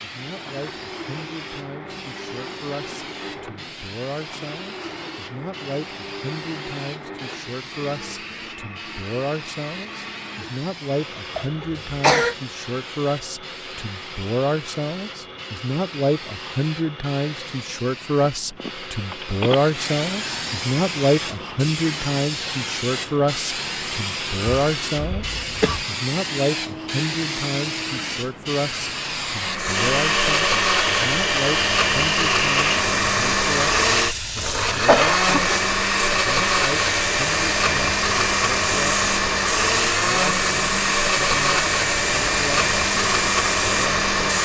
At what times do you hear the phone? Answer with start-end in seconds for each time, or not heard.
18.0-19.6.